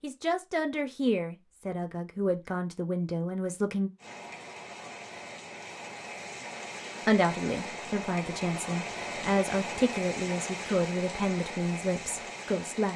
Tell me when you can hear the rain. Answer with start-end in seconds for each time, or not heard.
4.0-12.9.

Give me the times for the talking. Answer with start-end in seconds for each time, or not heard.
0.0-3.9, 7.0-12.9.